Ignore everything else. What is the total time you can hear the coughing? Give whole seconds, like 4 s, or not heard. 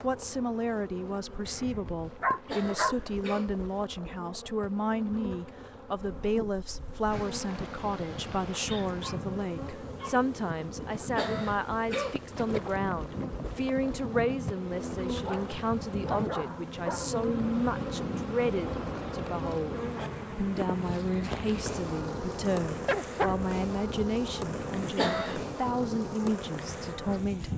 3 s.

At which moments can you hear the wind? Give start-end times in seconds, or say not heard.
6.0-27.5.